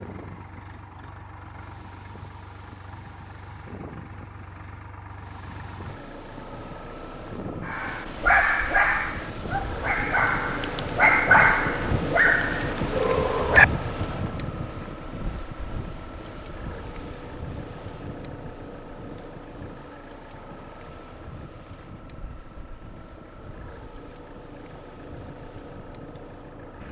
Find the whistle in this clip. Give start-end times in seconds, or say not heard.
not heard.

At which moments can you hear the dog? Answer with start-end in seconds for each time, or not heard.
7.7-13.7.